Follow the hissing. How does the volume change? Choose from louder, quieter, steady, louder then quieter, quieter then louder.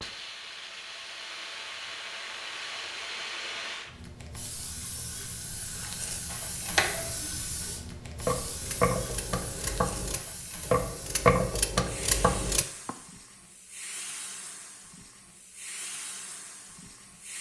quieter.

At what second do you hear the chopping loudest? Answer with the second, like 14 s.
11 s.